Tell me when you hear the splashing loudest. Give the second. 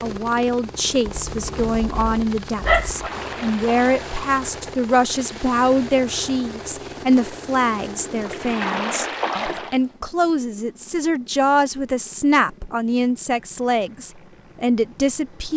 9 s.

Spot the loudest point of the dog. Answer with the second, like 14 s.
3 s.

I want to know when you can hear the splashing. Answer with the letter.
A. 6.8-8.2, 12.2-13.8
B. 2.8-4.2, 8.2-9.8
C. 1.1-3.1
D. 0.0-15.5
B.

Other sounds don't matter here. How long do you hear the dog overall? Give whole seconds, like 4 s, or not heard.
2 s.